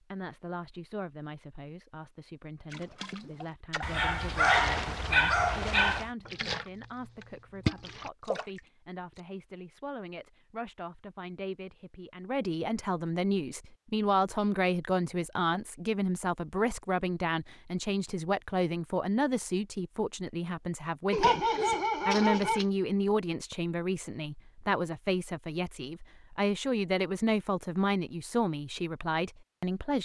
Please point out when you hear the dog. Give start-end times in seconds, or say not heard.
3.8-6.1, 21.1-22.6.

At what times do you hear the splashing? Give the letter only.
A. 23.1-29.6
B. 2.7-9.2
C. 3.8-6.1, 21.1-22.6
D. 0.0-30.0
B.